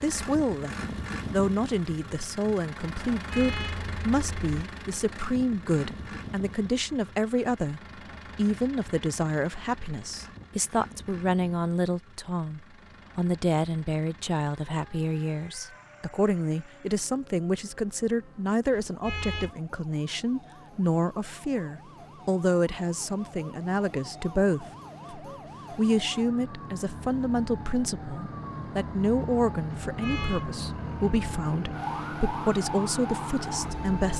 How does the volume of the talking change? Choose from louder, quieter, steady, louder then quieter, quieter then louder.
steady.